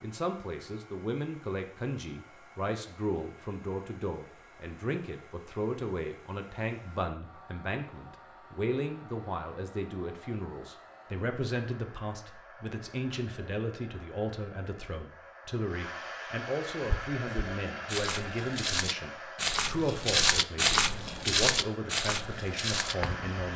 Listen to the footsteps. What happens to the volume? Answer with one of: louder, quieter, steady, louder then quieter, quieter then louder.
louder then quieter.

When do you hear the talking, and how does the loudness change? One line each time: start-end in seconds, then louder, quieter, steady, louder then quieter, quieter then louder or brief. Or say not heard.
0.0-23.5 steady.